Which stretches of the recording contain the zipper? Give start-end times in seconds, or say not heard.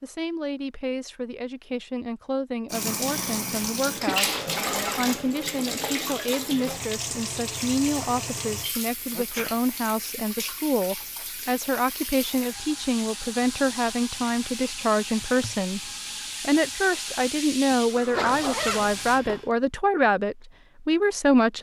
4.3-5.2, 18.1-19.4.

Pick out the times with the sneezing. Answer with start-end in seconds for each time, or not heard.
3.0-4.5, 9.1-9.6, 17.9-18.4.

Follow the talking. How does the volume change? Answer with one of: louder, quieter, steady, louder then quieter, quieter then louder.
louder.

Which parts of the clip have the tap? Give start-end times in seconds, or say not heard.
2.7-19.2.